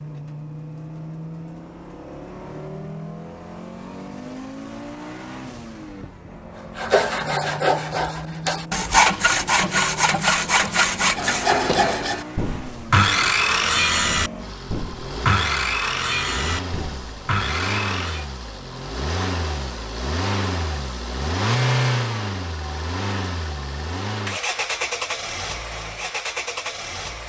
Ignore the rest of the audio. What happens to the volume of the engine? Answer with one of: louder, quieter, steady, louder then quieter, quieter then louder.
louder.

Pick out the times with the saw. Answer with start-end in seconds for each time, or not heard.
6.8-18.2.